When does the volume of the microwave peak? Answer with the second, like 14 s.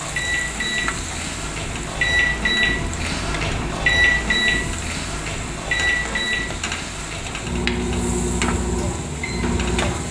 4 s.